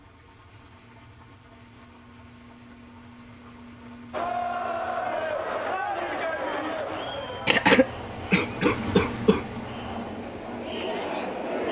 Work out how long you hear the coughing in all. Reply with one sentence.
The coughing can be heard for 2 seconds in total.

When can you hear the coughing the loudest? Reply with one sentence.
The loudest moment of the coughing is at 8 seconds.